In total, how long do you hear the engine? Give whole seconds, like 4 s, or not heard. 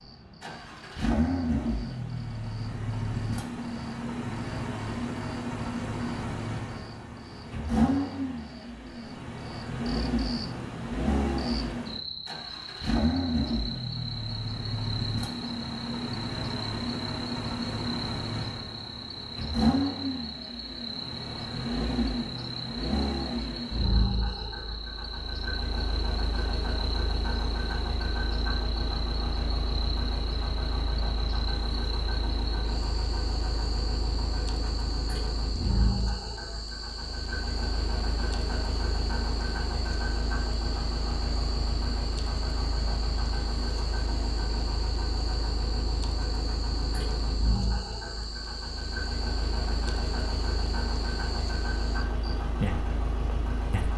54 s.